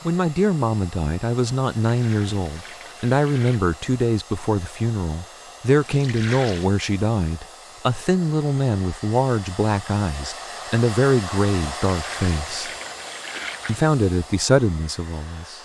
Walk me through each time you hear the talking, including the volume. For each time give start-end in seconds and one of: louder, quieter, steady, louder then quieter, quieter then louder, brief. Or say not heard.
0.1-12.7 steady
13.7-15.5 brief.